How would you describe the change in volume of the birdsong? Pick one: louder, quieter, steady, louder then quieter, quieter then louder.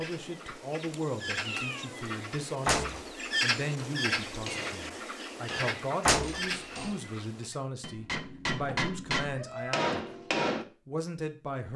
louder then quieter.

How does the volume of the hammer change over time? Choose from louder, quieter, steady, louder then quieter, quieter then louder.
quieter then louder.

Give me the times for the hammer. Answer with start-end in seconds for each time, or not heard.
4.2-10.7.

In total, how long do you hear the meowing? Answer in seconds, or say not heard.
2 s.